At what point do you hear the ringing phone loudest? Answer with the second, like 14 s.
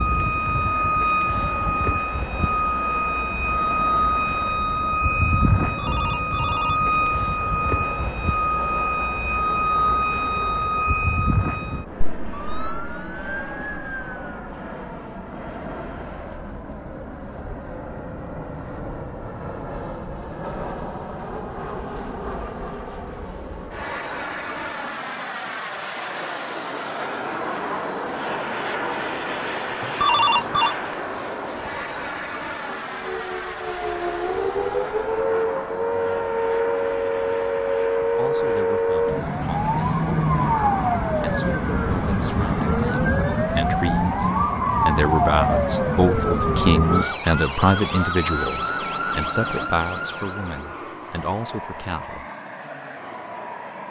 30 s.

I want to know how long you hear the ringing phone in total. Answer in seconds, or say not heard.
2 s.